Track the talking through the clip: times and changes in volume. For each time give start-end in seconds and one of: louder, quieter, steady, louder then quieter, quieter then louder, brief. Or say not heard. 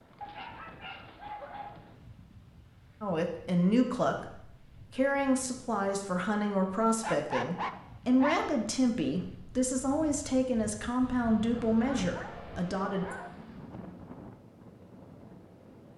3.0-13.2 steady.